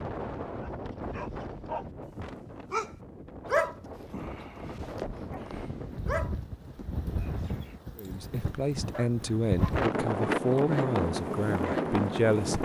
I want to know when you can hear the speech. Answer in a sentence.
You can hear the speech from 8.0 to 12.5 s.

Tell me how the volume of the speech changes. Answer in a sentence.
The loudness of the speech stays about the same.